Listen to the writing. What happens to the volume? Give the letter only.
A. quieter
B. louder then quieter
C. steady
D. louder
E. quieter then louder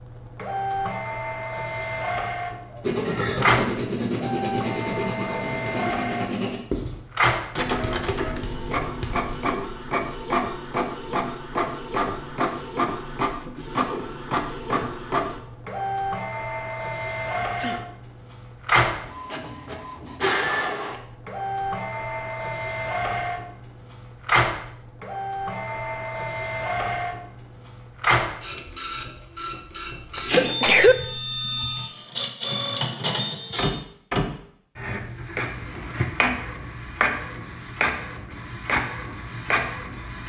A.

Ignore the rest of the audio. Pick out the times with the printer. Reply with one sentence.
The printer can be heard from 0.0 to 40.2 s.